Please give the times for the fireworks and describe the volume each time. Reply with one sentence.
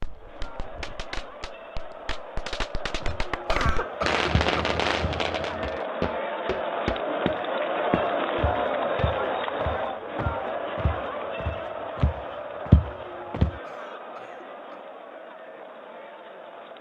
The fireworks can be heard from 0.0 to 5.8 s, getting louder.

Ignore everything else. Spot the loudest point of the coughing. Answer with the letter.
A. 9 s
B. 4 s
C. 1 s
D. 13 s
B.